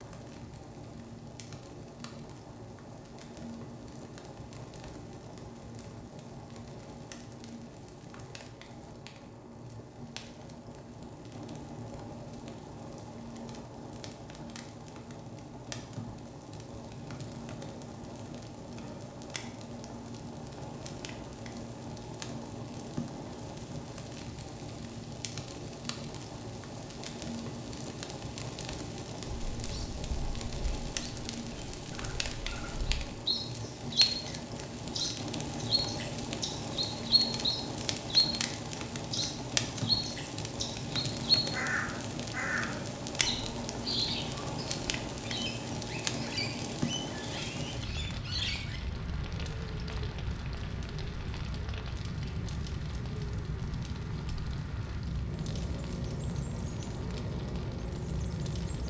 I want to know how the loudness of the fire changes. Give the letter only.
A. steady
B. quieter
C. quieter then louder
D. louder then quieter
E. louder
E.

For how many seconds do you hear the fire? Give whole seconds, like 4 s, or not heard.
59 s.